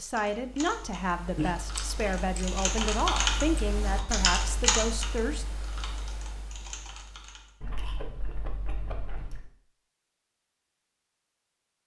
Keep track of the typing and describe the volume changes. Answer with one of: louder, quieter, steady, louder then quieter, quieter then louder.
louder then quieter.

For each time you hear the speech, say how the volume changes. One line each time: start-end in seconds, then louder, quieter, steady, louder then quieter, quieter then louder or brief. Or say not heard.
0.0-5.5 steady.